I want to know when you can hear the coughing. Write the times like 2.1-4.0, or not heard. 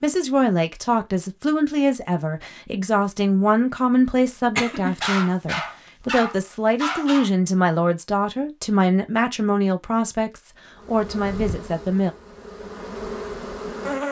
4.3-5.0.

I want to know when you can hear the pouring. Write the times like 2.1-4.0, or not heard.
not heard.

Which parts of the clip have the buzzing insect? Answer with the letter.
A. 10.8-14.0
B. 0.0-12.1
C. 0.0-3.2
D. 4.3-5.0
A.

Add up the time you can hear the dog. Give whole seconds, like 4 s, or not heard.
2 s.